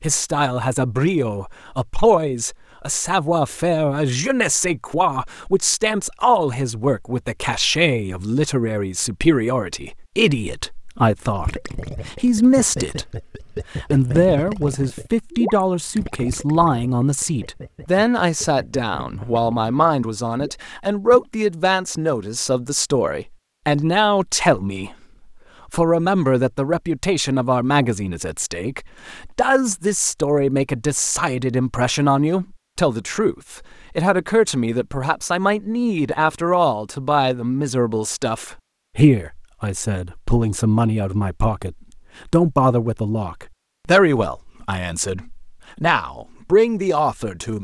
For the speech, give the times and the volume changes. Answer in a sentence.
You can hear the speech from 0.0 to 24.9 s, at a steady volume; and from 25.7 to 47.6 s, at a steady volume.